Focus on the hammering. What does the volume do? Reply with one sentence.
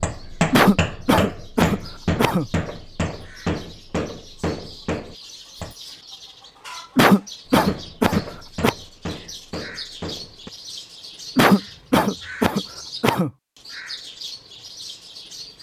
The volume of the hammering goes down.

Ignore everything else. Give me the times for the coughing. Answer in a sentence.
You can hear the coughing from 0.5 to 2.5 s, from 7.0 to 8.8 s and from 11.3 to 13.3 s.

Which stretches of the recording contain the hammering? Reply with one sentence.
The hammering can be heard from 0.0 to 5.8 s and from 7.5 to 10.5 s.